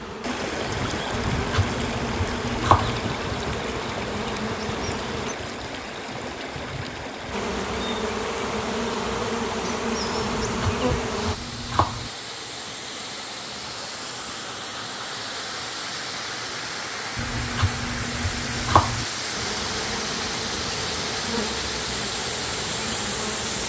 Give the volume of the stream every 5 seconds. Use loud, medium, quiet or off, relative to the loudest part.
loud, medium, medium, loud, loud.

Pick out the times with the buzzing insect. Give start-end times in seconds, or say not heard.
0.0-5.3, 7.3-11.3, 19.4-23.6.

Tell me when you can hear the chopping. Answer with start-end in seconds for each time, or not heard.
1.1-3.0, 10.4-12.1, 17.1-19.1.